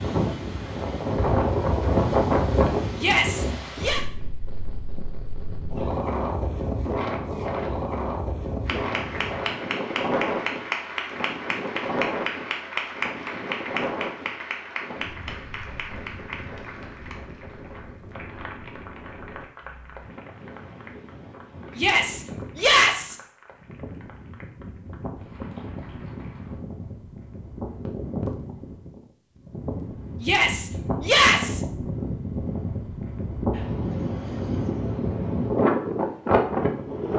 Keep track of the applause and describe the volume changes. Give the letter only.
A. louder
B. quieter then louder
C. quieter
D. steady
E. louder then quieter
C.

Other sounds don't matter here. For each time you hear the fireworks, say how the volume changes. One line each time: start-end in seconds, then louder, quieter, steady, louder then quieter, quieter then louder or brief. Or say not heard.
not heard.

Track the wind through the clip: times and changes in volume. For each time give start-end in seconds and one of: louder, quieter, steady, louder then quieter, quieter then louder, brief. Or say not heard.
0.0-37.1 quieter then louder.